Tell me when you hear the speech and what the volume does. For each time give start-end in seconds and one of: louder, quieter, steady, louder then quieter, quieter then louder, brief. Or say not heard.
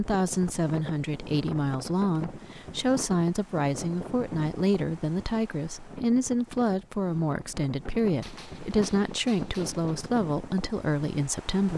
0.0-11.7 steady.